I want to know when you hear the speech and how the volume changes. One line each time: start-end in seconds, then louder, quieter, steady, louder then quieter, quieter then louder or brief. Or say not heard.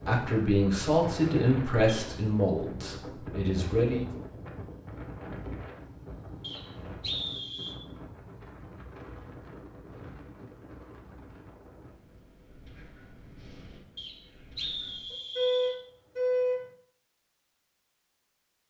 0.0-4.0 quieter.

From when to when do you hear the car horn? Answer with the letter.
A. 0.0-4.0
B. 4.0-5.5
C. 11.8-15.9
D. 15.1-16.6
D.